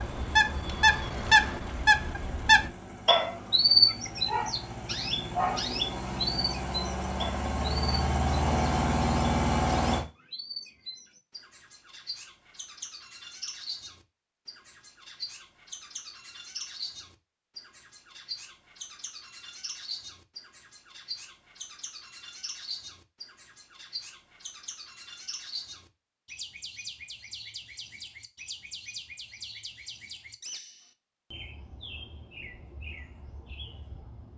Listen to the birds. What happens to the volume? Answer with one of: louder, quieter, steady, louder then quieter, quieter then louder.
quieter.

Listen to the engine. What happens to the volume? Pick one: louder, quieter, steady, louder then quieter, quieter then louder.
louder.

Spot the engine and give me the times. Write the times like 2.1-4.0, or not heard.
0.0-10.1.